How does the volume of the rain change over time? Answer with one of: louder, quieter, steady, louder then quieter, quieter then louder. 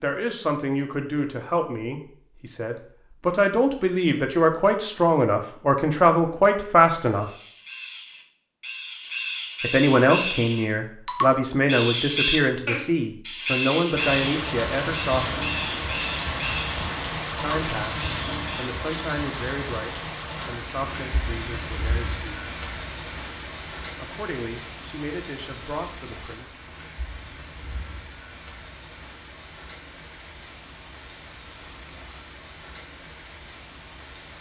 quieter.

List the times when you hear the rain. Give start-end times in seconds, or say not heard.
13.9-34.3.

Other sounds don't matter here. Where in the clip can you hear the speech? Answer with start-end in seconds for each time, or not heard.
0.0-7.2, 9.6-15.4, 17.4-22.4, 23.9-26.6.